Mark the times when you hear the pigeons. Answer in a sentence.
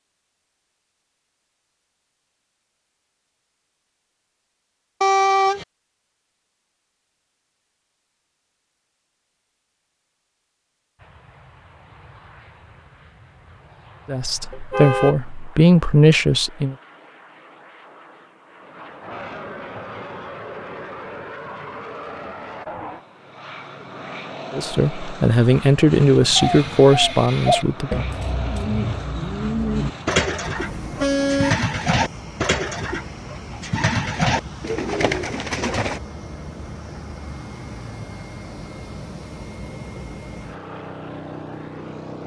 You can hear the pigeons from 26.4 to 36.0 s.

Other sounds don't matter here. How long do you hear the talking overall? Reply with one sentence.
The talking can be heard for 6 seconds in total.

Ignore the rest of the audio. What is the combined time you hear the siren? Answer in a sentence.
You can't hear the siren here.